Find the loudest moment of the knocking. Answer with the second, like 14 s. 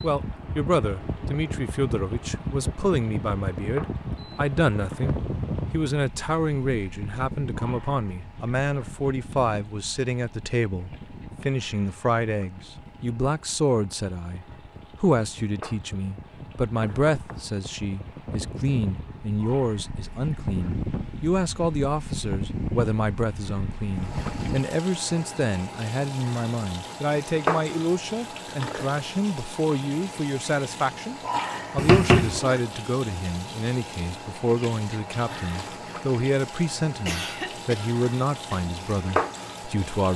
32 s.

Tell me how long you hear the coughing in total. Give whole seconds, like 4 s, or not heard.
2 s.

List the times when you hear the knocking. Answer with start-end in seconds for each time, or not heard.
16.8-17.5, 31.8-32.4.